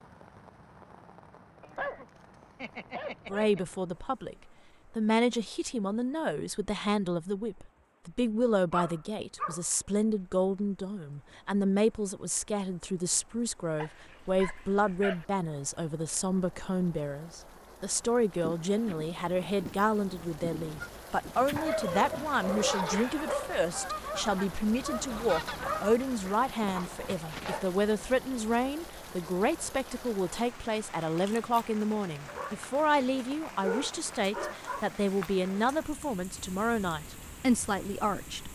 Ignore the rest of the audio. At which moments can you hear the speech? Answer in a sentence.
You can hear the speech from 3.3 to 38.5 s.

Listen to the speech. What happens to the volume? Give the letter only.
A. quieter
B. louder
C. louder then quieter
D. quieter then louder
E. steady
E.